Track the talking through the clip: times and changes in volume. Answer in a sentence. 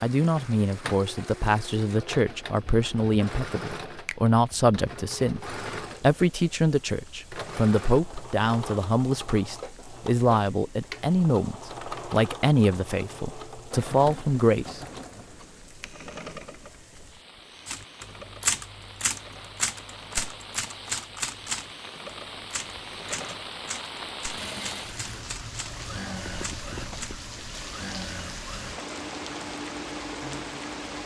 The talking can be heard from 0.0 to 14.8 s, at a steady volume.